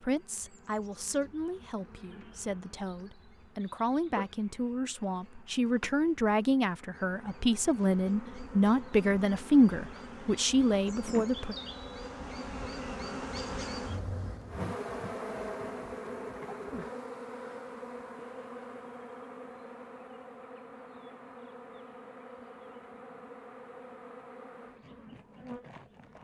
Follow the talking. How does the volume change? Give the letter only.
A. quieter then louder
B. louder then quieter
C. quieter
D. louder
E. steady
D.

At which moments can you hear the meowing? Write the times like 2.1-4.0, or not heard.
not heard.